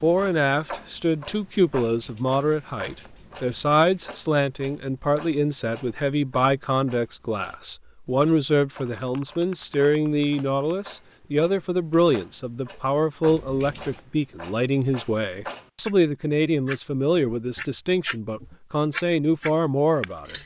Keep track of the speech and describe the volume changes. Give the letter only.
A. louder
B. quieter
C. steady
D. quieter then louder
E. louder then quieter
C.